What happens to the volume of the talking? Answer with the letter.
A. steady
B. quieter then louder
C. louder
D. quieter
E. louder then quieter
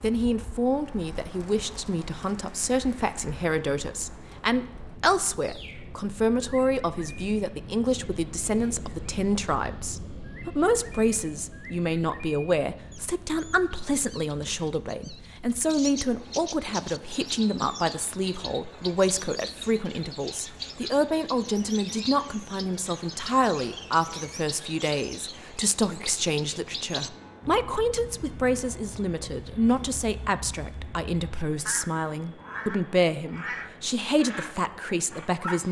A.